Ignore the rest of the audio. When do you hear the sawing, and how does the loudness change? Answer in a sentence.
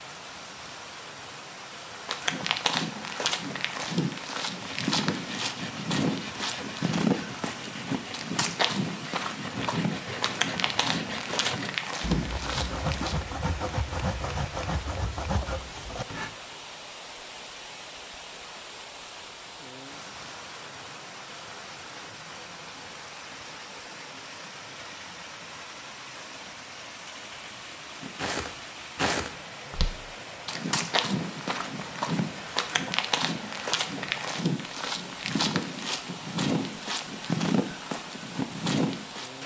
You can hear the sawing from 4.5 to 16.4 s, getting louder.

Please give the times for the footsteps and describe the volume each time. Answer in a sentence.
You can hear the footsteps from 2.0 to 13.2 s, at a steady volume; and from 28.0 to 39.3 s, at a steady volume.